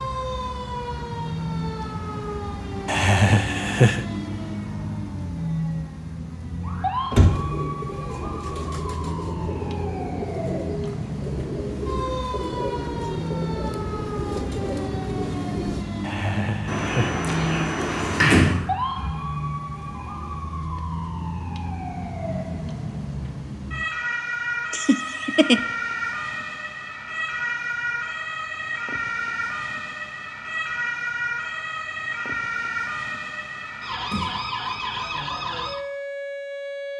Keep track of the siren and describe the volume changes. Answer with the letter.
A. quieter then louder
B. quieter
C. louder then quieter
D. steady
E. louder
D.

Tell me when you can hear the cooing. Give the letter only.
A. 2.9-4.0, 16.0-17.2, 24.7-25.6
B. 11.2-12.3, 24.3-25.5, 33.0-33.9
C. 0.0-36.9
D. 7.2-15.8
D.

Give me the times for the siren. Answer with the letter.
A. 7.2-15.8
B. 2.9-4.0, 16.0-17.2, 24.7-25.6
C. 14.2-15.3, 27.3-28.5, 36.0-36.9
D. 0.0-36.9
D.